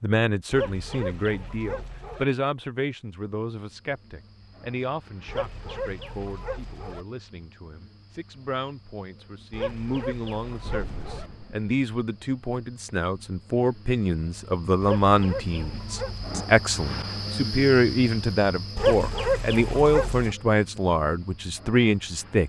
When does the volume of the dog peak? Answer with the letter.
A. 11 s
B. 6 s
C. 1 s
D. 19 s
D.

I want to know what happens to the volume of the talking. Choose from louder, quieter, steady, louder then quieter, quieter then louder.
quieter then louder.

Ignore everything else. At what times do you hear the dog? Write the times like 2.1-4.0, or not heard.
0.5-2.2, 5.2-7.0, 9.5-11.3, 14.8-16.4, 18.8-20.4.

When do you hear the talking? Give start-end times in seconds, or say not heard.
0.0-22.4.